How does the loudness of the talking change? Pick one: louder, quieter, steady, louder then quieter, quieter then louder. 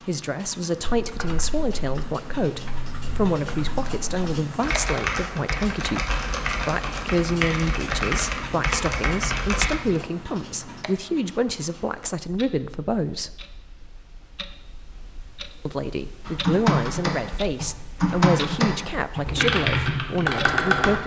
steady.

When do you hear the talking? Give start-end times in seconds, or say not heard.
0.1-13.4, 15.7-21.0.